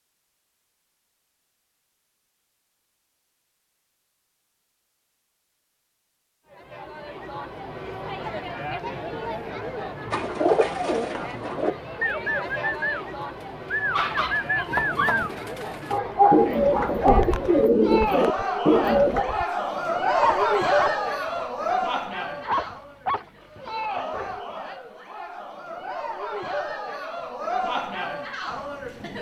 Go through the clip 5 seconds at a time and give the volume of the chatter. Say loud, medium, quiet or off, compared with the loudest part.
off, medium, medium, loud, loud, loud.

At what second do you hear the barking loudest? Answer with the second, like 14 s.
16 s.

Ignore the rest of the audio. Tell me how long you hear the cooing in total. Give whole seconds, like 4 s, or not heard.
9 s.